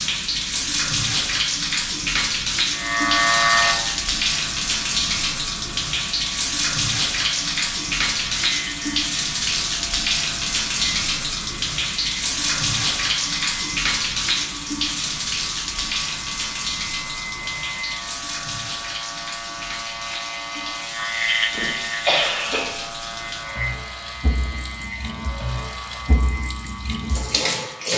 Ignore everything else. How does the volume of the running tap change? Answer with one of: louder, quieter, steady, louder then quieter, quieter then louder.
quieter.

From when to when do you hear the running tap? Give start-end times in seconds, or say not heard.
0.0-27.9.